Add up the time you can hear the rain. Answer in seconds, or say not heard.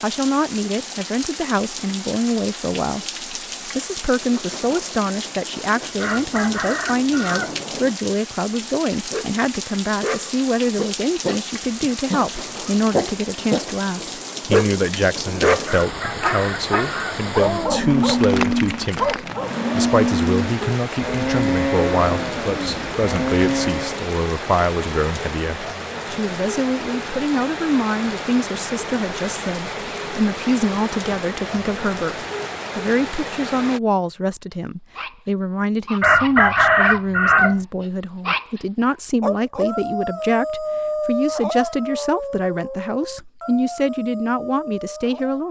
34 s.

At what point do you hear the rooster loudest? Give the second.
37 s.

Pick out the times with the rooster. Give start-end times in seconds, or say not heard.
6.0-7.5, 15.7-17.2, 36.0-37.5.